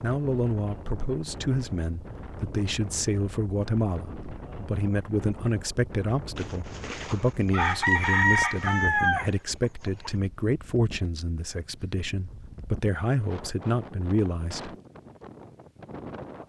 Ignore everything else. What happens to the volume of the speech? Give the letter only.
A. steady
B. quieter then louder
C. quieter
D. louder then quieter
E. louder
A.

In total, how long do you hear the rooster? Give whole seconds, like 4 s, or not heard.
4 s.